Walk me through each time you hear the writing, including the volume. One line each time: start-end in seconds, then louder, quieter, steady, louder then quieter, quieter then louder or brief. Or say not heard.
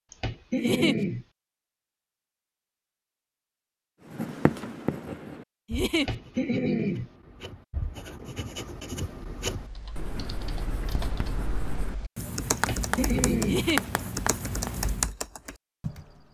4.0-15.1 quieter then louder.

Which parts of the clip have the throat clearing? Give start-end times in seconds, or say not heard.
0.1-1.2, 6.0-7.1, 12.6-13.7.